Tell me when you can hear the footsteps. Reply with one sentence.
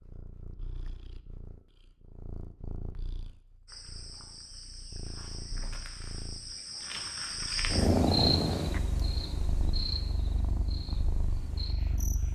The footsteps can't be heard in this clip.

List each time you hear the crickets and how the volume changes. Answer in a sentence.
You can hear the crickets from 3.6 to 12.3 s, getting louder then quieter.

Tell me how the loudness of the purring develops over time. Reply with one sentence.
The loudness of the purring goes up, then down.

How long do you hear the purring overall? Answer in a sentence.
The purring can be heard for 12 seconds in total.